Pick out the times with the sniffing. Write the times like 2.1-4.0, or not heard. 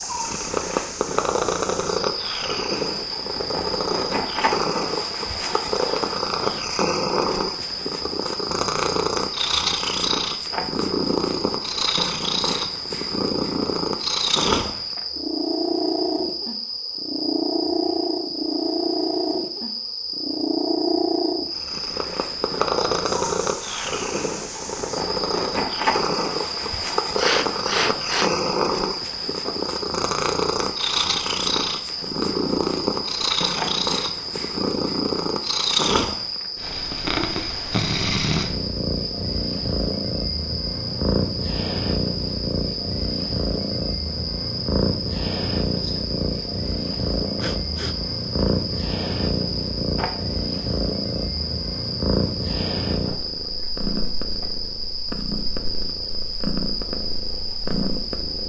5.5-6.7, 27.1-28.5, 47.4-48.0.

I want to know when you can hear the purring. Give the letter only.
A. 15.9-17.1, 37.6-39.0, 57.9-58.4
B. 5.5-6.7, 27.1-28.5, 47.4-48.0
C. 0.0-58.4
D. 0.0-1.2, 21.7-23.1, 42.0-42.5
C.